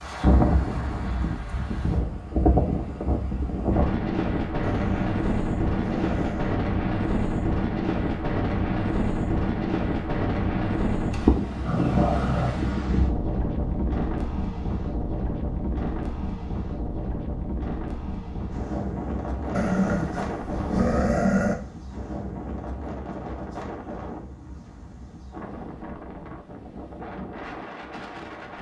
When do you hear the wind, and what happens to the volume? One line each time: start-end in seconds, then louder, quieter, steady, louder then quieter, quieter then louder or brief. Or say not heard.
0.0-28.5 quieter.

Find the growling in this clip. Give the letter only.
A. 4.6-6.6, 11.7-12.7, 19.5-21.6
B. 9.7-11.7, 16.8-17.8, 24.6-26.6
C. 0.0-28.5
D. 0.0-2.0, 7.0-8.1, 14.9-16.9
A.